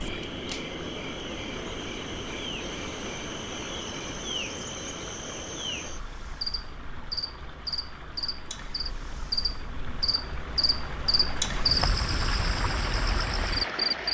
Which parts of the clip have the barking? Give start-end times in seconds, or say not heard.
not heard.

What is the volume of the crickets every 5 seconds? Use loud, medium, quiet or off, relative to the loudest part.
medium, medium, loud.